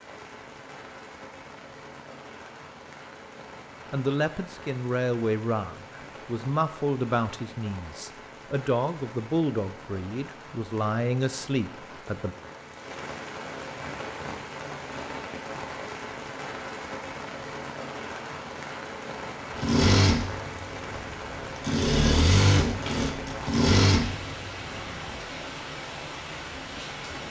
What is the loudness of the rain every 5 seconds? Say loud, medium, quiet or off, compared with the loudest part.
medium, medium, loud, loud, loud, loud.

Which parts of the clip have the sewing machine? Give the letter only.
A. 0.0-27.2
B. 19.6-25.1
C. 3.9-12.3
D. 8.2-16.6
B.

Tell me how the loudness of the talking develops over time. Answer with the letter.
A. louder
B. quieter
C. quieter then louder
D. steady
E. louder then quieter
D.